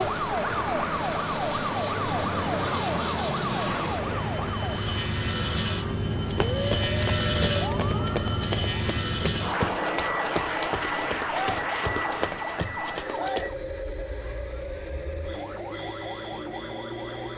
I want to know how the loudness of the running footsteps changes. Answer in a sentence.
The volume of the running footsteps stays about the same.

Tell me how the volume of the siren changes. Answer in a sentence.
The loudness of the siren goes down.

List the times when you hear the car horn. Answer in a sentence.
The car horn can't be heard in this clip.